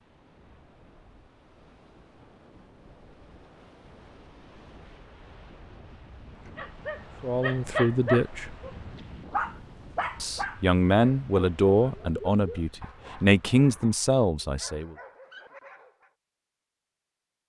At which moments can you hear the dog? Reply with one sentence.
The dog can be heard from 6.5 to 16.1 s.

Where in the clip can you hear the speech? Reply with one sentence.
You can hear the speech from 7.2 to 8.6 s and from 10.2 to 14.9 s.